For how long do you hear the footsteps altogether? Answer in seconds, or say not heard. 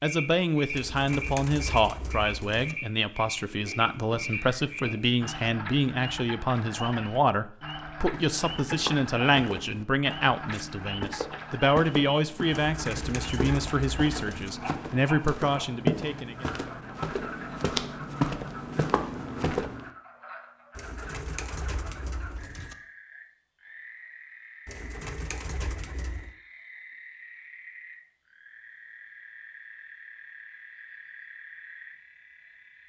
12 s.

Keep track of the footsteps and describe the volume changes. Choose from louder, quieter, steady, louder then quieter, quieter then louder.
louder.